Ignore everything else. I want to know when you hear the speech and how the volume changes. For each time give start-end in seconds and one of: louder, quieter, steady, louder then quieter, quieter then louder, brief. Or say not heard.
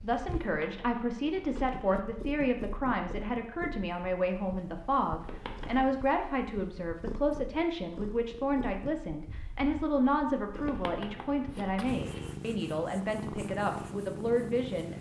0.0-14.9 steady.